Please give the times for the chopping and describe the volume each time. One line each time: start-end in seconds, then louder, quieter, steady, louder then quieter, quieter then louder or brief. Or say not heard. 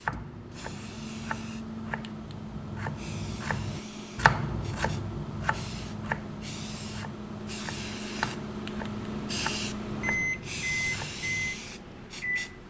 0.1-11.5 louder then quieter.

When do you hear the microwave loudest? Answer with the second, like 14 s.
10 s.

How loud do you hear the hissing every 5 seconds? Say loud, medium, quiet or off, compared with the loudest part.
medium, loud, loud.